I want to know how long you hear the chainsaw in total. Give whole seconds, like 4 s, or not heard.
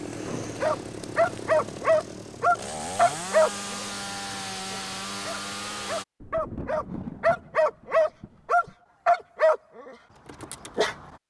6 s.